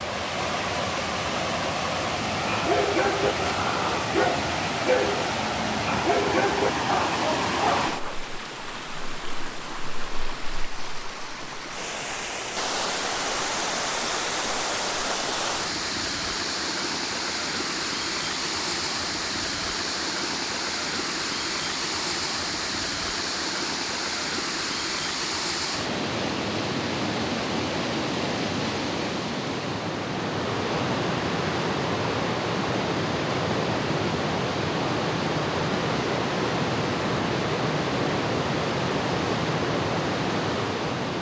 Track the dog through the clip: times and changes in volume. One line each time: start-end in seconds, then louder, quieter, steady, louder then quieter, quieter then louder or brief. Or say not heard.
2.2-8.2 steady.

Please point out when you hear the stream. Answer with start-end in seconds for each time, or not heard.
0.0-41.1.